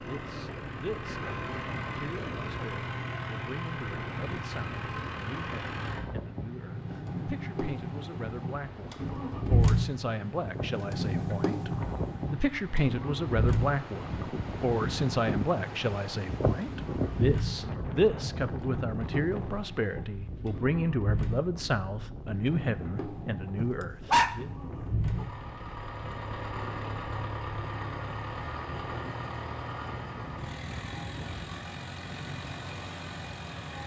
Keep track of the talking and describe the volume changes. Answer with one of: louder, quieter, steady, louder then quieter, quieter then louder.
louder.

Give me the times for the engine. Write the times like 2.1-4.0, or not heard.
0.0-33.8.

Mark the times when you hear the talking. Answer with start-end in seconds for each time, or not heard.
0.0-24.5.